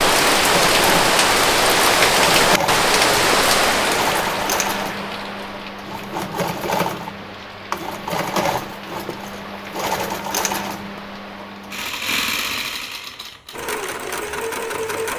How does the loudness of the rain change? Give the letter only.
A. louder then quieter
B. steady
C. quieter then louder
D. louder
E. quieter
E.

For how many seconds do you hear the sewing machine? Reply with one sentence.
The sewing machine can be heard for 15 seconds in total.